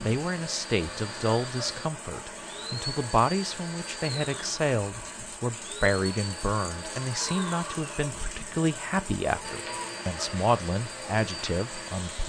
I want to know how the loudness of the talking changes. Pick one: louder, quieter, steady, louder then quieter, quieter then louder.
steady.